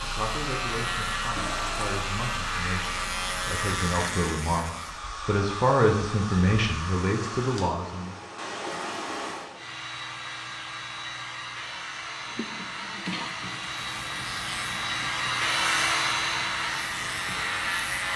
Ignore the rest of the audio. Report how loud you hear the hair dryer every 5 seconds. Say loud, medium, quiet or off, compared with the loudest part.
medium, medium, medium, loud.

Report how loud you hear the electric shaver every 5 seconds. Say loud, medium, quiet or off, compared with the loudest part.
loud, off, medium, loud.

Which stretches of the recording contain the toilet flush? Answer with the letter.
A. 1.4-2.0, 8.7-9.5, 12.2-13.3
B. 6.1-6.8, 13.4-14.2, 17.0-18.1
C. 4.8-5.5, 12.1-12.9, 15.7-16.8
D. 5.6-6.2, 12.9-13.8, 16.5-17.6
A.